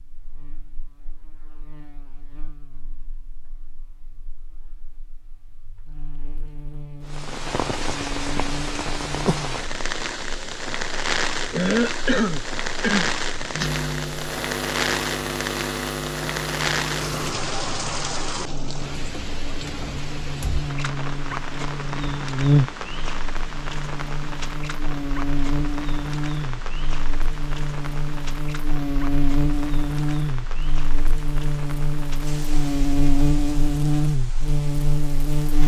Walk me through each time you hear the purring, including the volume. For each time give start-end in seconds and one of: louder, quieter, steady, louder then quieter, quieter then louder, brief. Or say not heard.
not heard.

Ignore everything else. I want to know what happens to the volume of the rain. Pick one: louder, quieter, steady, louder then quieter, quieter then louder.
quieter.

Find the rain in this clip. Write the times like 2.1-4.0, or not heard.
7.0-35.6.